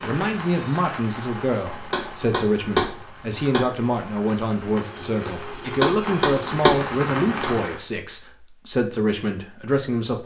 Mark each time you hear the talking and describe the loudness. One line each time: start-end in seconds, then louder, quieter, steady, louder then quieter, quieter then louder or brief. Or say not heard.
0.0-10.2 steady.